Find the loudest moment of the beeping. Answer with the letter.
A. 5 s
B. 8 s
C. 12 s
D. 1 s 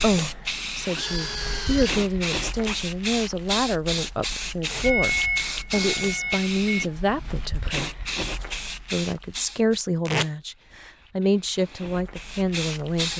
A.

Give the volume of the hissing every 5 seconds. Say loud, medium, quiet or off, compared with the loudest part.
loud, loud, medium.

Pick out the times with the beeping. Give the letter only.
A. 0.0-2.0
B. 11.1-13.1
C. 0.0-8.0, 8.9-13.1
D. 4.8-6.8
D.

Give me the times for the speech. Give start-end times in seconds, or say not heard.
0.0-8.0, 8.9-13.1.